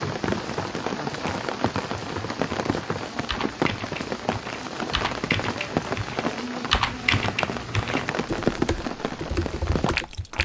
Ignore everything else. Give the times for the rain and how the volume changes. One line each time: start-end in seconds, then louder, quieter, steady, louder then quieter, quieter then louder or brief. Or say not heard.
0.0-10.3 steady.